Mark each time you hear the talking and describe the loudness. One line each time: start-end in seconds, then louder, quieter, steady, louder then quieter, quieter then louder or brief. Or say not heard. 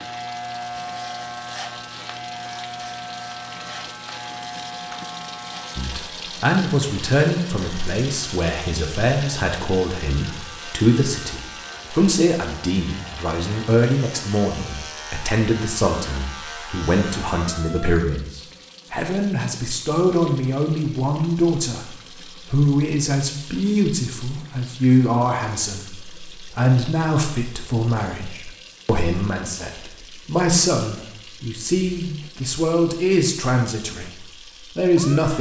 5.8-35.3 steady.